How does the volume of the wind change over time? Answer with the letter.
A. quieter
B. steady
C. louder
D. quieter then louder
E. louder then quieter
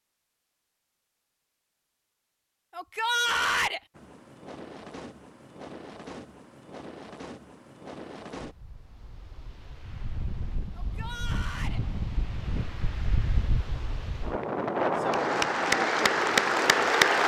C.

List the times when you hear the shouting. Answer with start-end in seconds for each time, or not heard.
2.7-3.8, 10.8-11.8.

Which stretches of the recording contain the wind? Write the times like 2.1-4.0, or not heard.
4.0-17.2.